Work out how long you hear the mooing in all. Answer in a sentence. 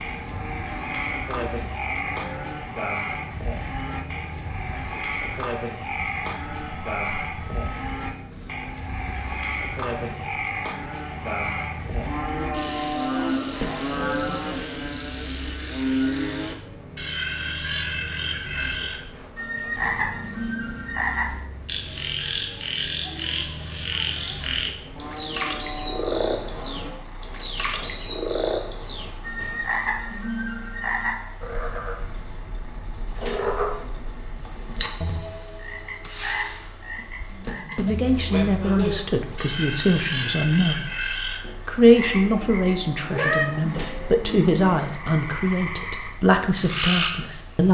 You can hear the mooing for 9 seconds altogether.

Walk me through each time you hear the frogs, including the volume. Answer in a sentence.
You can hear the frogs from 0.0 to 47.6 s, at a steady volume.